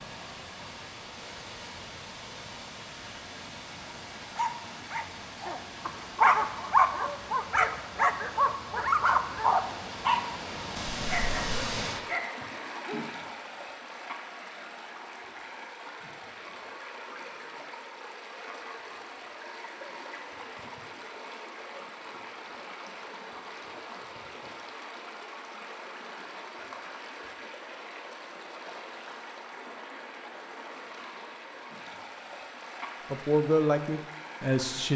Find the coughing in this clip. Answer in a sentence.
The coughing can't be heard in this clip.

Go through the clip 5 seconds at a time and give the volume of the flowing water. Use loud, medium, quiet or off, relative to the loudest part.
medium, medium, loud, medium, medium, medium, medium.